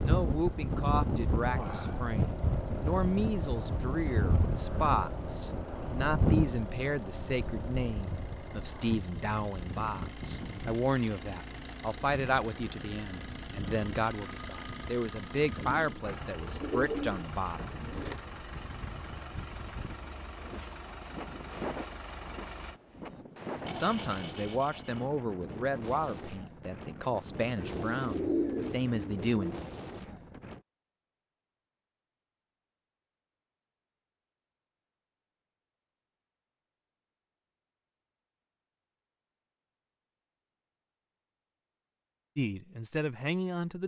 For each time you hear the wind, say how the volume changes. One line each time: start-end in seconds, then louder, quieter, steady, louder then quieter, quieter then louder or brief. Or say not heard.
0.0-30.6 quieter.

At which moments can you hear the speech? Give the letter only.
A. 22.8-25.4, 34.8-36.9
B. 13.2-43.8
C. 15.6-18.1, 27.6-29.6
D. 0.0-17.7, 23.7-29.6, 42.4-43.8
D.